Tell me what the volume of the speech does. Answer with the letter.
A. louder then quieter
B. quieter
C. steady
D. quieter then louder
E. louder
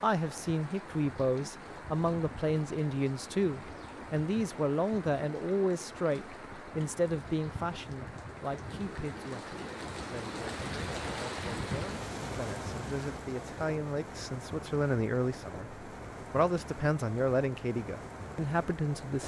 D.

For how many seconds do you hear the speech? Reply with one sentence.
The speech can be heard for 19 seconds in total.